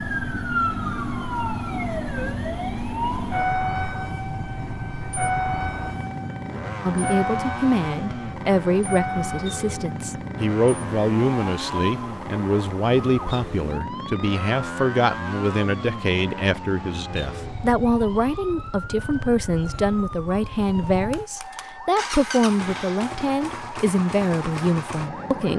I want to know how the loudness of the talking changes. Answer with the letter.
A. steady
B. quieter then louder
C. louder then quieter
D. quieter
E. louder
A.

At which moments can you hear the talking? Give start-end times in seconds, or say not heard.
6.8-25.5.